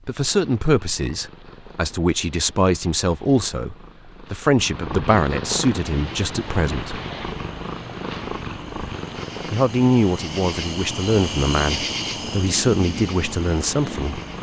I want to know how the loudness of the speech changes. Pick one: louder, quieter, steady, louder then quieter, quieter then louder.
steady.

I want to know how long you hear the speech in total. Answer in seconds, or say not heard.
12 s.